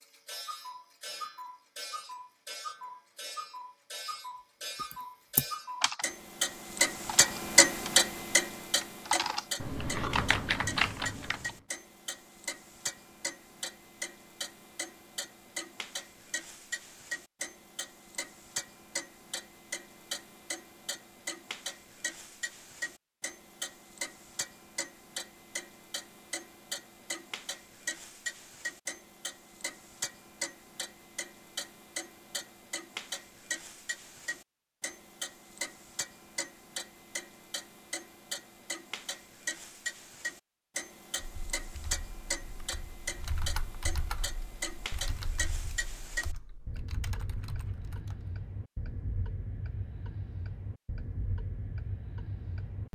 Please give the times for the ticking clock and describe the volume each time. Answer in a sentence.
The ticking clock can be heard from 0.0 to 52.8 s, getting quieter.